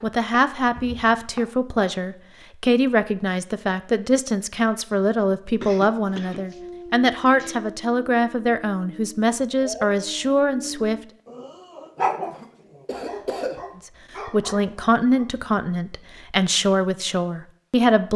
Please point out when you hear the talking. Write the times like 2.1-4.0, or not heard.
0.0-11.0, 13.8-18.1.